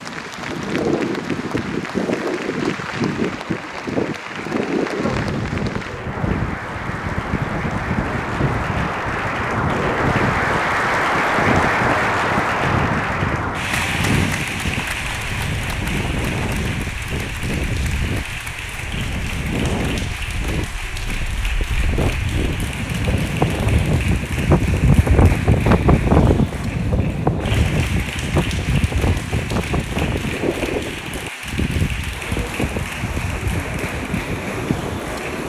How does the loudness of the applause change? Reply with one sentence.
The volume of the applause goes up, then down.